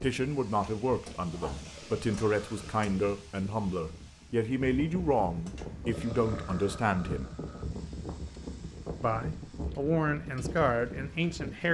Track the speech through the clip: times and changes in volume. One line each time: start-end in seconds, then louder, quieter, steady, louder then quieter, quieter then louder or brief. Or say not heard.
0.0-7.3 steady
9.0-11.7 brief.